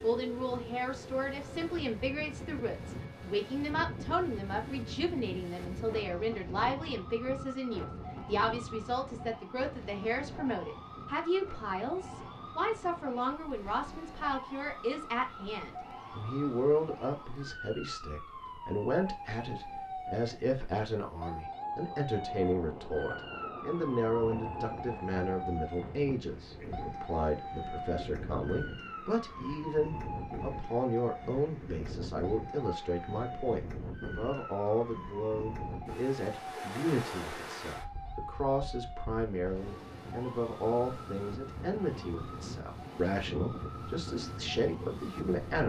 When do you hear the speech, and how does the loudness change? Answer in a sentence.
The speech can be heard from 0.0 to 45.6 s, at a steady volume.